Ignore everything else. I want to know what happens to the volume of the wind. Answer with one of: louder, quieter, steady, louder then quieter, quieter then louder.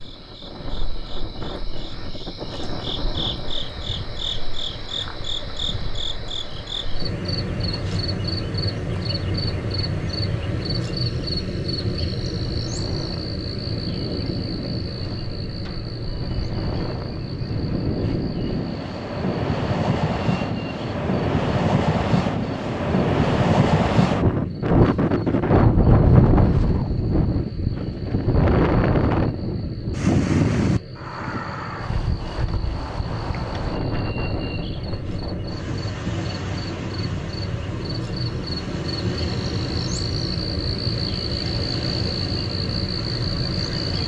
louder then quieter.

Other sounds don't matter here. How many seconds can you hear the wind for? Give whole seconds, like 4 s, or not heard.
44 s.